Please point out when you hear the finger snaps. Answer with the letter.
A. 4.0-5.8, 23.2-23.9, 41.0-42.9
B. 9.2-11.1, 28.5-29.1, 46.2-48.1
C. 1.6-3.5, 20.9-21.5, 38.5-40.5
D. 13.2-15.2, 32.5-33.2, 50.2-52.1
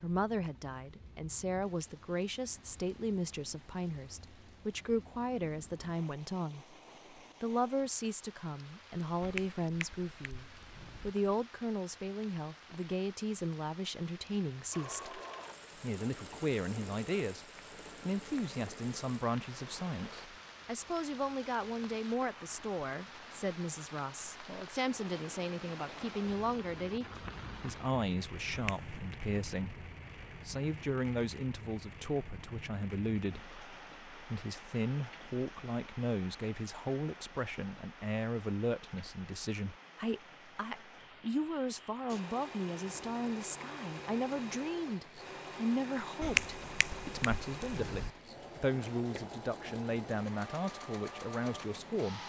B.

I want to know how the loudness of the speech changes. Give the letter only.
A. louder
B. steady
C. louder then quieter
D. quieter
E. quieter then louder
B.